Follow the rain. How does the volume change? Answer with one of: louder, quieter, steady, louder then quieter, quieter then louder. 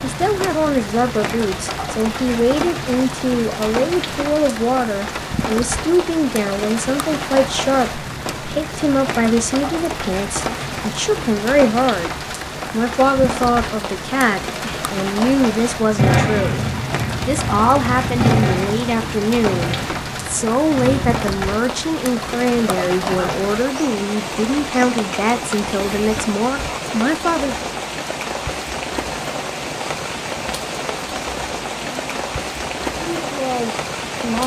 steady.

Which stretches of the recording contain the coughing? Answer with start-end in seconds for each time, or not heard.
22.6-23.4.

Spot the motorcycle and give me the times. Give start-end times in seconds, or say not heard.
15.9-21.4.